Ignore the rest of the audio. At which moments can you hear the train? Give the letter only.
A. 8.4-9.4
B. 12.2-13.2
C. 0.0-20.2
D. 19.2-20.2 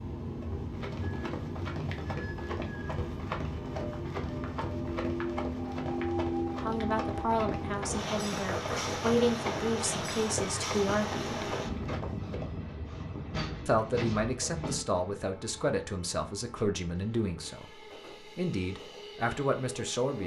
C.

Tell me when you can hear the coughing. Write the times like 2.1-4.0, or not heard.
8.4-9.4.